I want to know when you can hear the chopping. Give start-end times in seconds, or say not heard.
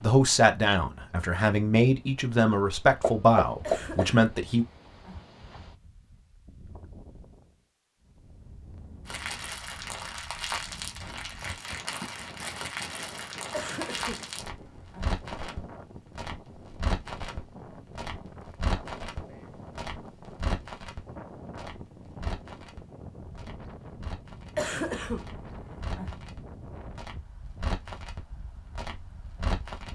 3.0-4.1.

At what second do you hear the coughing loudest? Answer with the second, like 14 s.
25 s.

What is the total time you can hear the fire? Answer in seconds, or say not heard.
21 s.